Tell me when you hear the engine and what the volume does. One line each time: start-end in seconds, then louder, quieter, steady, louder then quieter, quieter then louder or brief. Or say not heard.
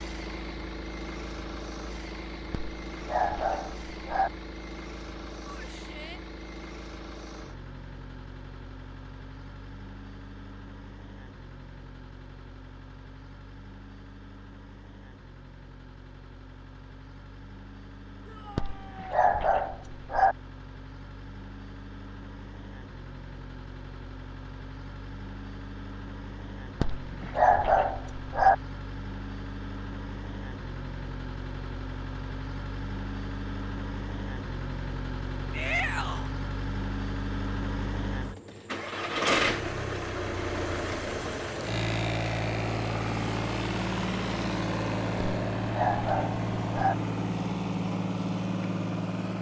0.0-49.3 quieter then louder.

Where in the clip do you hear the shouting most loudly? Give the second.
36 s.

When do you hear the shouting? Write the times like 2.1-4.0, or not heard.
5.5-6.2, 18.2-19.1, 35.5-36.3.